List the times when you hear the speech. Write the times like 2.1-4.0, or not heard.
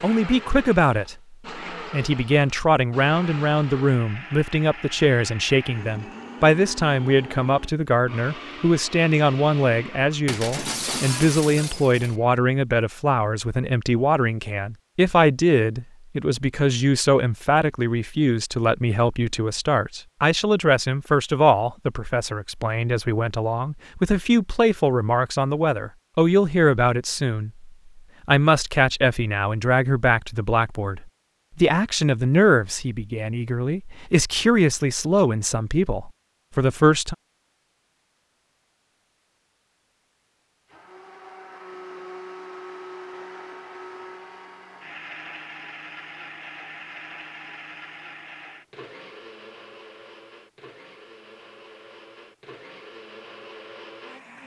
0.0-37.1.